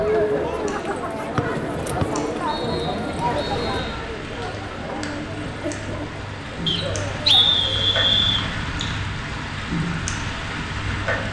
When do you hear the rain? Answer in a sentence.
The rain can be heard from 0.0 to 11.2 s.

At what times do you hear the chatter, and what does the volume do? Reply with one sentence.
The chatter can be heard from 0.0 to 8.1 s, getting quieter.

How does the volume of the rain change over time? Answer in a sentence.
The loudness of the rain goes up.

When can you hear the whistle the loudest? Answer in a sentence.
The loudest moment of the whistle is at 7 seconds.